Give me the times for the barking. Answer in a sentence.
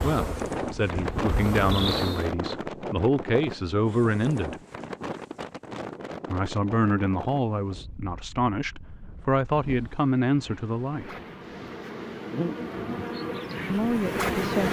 The barking can't be heard in this clip.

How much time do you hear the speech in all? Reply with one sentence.
You can hear the speech for 10 seconds altogether.